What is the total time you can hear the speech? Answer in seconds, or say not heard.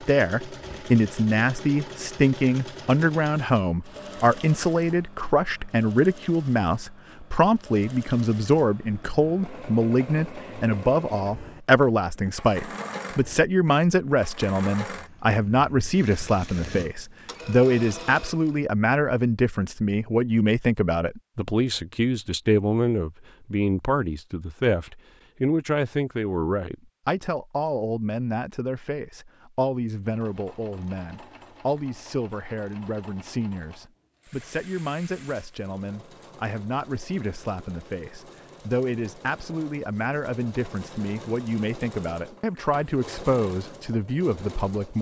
45 s.